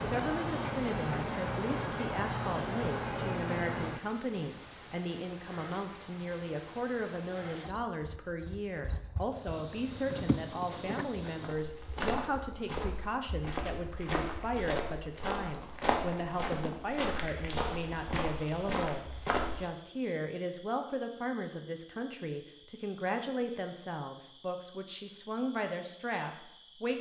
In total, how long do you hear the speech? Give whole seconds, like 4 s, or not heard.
27 s.